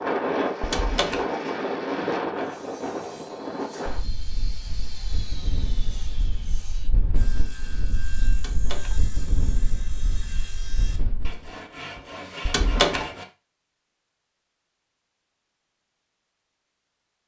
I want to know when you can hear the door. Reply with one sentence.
The door can be heard from 0.6 to 1.2 s, from 8.3 to 8.9 s and from 12.4 to 13.1 s.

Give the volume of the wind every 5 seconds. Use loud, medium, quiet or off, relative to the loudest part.
loud, medium, quiet, off.